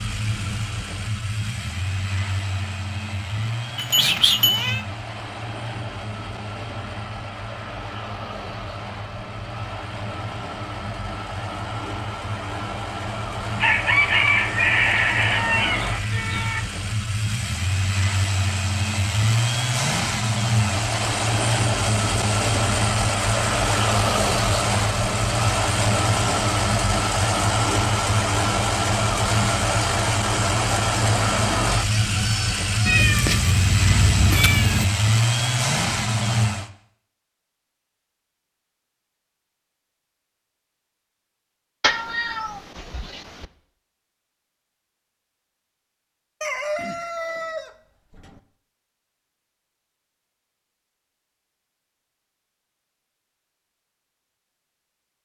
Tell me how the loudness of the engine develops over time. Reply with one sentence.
The volume of the engine goes up.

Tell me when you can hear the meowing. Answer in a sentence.
The meowing can be heard from 3.8 to 4.8 s, from 32.9 to 34.9 s and from 41.8 to 43.5 s.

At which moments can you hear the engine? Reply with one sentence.
You can hear the engine from 0.0 to 36.7 s.